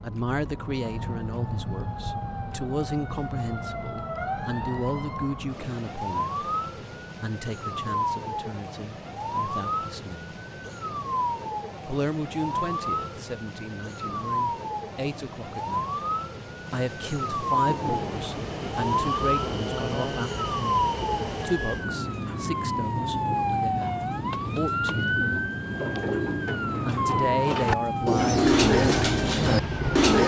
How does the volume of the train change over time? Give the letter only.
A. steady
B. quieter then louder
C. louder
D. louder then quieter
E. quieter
A.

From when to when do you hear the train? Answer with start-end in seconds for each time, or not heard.
17.6-30.1.